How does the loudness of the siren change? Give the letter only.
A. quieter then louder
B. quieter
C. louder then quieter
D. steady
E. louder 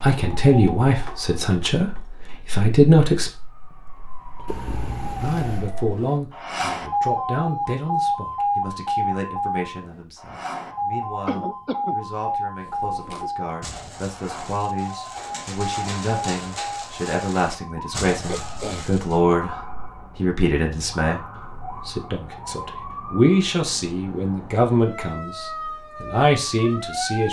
C.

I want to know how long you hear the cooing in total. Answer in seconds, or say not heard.
7 s.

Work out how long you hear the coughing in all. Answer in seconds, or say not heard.
4 s.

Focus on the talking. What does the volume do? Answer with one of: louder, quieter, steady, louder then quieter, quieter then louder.
quieter then louder.